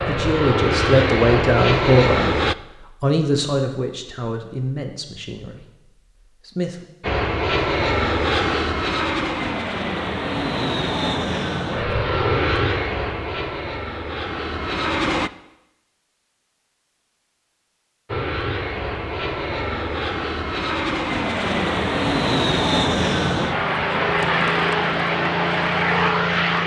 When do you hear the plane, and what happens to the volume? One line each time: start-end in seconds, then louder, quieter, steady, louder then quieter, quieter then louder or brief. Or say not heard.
0.0-2.5 brief
7.0-15.3 quieter
18.1-26.6 louder.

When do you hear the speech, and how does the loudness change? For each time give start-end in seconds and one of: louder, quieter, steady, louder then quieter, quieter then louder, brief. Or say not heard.
0.1-6.8 quieter.